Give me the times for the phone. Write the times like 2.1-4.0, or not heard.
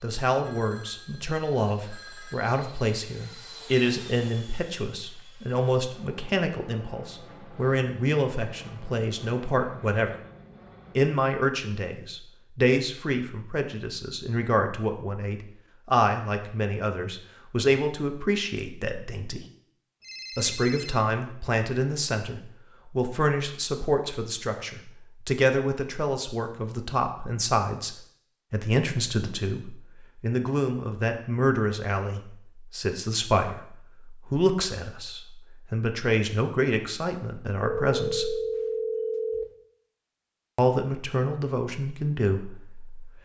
0.4-2.4, 20.0-21.1, 37.6-39.5.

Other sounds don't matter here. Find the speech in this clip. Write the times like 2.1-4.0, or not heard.
0.0-10.2, 10.9-19.4, 20.4-38.4, 40.5-43.2.